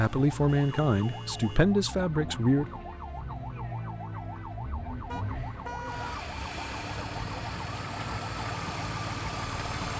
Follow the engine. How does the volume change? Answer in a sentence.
The volume of the engine goes up.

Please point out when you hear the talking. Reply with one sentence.
You can hear the talking from 0.0 to 2.8 s.